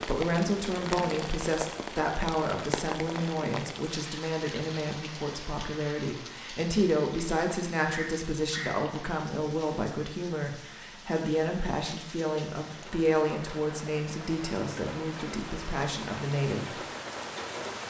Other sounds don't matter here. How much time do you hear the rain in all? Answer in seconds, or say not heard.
18 s.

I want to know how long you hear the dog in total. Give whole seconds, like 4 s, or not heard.
not heard.